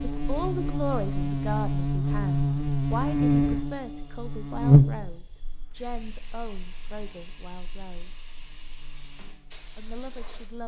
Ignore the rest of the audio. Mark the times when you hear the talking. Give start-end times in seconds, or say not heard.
0.0-8.1, 9.7-10.6.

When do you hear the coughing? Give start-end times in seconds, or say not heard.
not heard.